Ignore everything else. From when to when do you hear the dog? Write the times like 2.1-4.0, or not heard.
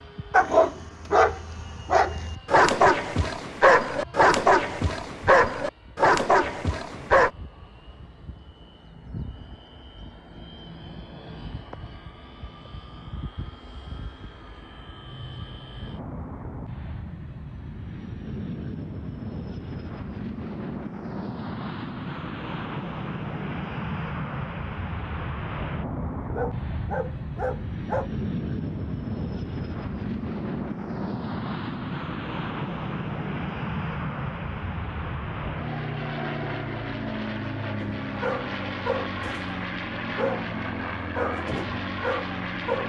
0.3-7.3, 26.2-28.1, 37.8-42.8.